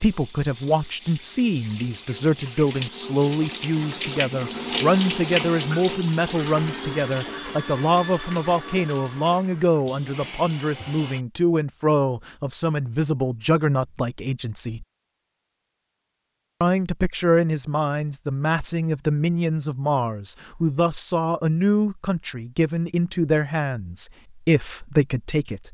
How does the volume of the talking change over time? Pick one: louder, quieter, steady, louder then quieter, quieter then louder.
steady.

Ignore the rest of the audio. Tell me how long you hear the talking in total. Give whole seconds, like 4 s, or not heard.
24 s.